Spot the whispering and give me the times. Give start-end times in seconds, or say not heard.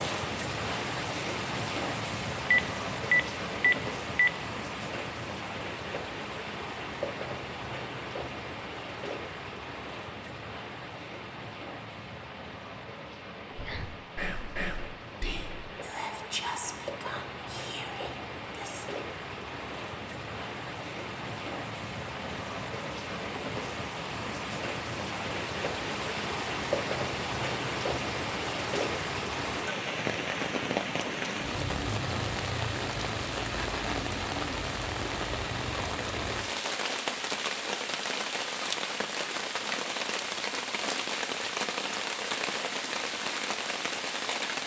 13.5-18.9.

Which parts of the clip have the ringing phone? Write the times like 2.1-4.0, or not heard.
2.5-4.3.